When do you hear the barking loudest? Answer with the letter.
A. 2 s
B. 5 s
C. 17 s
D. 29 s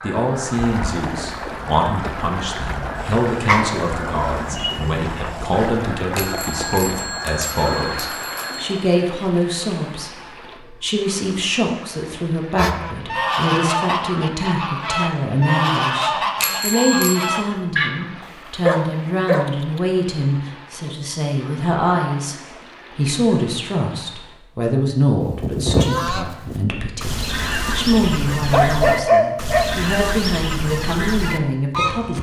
D.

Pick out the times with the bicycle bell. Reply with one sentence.
You can hear the bicycle bell from 6.2 to 8.8 s and from 16.4 to 17.3 s.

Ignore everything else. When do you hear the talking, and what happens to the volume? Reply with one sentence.
You can hear the talking from 0.0 to 22.4 s, at a steady volume; and from 22.9 to 32.1 s, at a steady volume.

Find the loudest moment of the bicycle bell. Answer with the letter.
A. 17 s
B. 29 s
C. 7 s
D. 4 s
A.